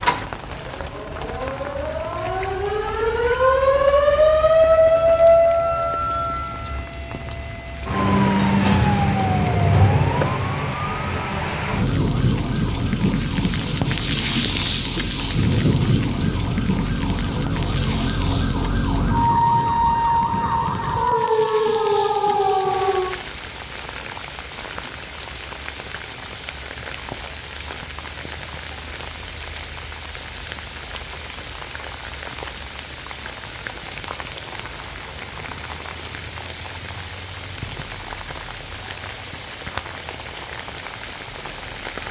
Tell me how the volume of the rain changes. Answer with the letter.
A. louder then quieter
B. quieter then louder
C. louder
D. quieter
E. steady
A.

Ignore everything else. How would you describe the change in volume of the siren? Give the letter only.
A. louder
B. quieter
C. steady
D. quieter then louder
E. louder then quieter
D.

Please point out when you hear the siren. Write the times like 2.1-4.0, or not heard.
0.0-23.2.